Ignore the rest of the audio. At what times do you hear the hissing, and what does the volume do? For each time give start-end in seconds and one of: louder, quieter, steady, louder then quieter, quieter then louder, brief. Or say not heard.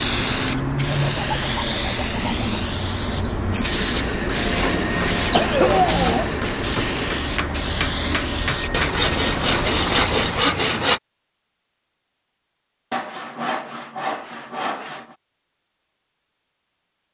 0.0-10.5 steady.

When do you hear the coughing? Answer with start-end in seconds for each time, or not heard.
5.3-6.3.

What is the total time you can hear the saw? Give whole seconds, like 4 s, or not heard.
8 s.